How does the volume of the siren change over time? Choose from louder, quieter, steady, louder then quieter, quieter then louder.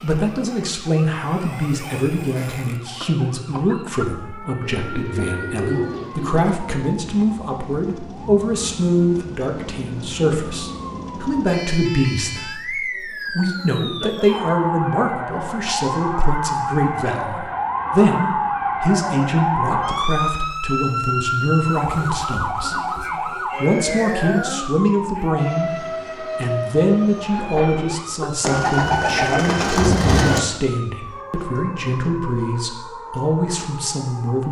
louder then quieter.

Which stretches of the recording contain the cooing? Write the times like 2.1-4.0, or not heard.
4.6-6.5, 28.4-30.4.